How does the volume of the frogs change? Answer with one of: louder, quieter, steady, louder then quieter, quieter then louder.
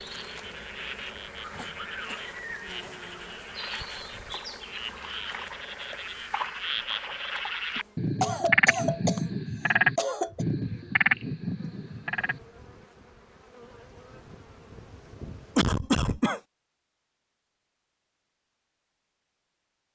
louder.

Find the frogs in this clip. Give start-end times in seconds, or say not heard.
0.0-12.4.